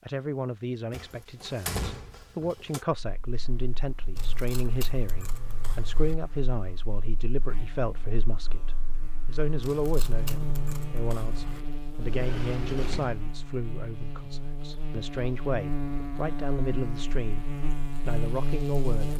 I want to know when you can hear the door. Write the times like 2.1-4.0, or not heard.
0.9-2.9, 12.0-13.4.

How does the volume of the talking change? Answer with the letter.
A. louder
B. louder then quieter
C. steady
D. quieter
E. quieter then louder
C.